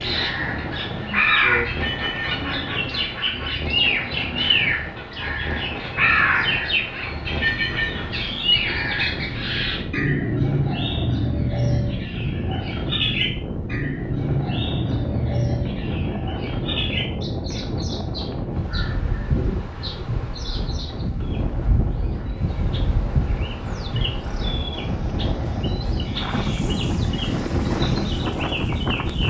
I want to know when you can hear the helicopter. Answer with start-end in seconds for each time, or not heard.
24.7-29.2.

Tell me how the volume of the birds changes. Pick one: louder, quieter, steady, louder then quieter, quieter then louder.
quieter.